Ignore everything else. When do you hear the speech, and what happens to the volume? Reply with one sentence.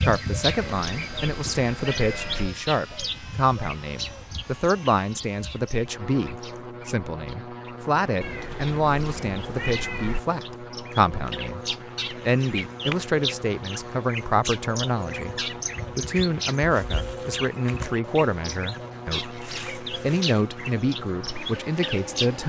You can hear the speech from 0.0 to 22.4 s, at a steady volume.